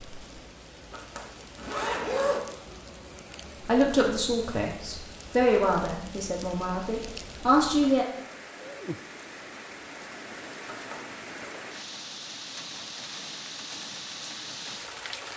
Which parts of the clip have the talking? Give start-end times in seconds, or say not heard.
3.6-8.1.